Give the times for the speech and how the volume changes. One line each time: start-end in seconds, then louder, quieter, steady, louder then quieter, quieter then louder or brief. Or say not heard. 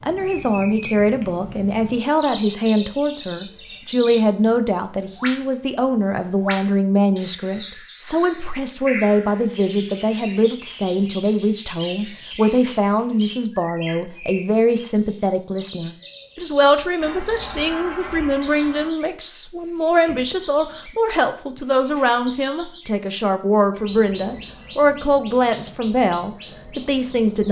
0.0-27.4 steady.